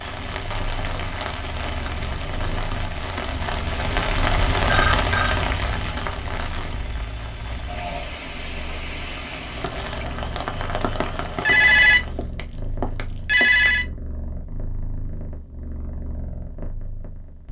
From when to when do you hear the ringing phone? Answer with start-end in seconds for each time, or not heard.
4.7-5.4, 11.4-13.8.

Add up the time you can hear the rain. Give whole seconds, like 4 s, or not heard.
12 s.